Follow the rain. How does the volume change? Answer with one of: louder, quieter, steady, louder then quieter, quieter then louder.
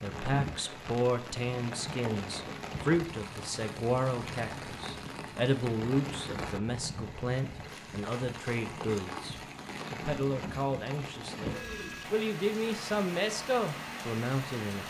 steady.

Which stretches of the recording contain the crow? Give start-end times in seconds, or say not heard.
not heard.